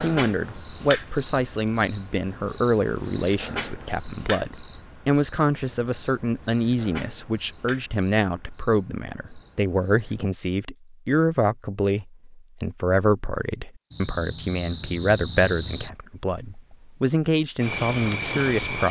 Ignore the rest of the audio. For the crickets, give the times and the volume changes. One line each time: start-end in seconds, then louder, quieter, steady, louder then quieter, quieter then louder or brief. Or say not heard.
0.0-18.8 quieter then louder.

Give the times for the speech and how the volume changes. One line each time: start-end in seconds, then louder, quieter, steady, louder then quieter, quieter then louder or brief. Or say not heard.
0.0-18.8 steady.